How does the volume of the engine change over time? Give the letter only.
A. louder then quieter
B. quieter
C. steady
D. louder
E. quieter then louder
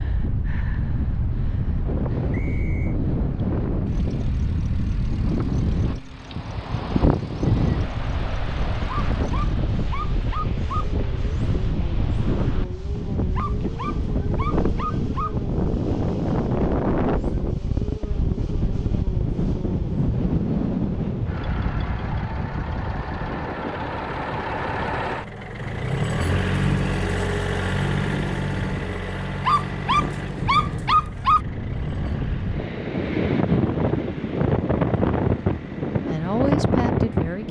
A.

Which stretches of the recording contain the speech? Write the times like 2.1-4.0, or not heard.
36.0-37.4.